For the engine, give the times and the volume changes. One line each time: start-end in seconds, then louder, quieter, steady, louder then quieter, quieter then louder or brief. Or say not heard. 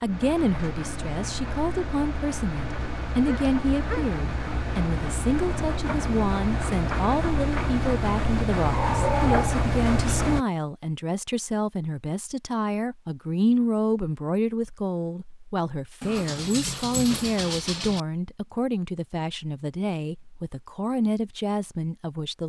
0.0-10.4 louder.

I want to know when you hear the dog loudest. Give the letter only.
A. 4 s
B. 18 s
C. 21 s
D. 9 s
D.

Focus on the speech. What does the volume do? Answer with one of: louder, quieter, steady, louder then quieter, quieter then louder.
steady.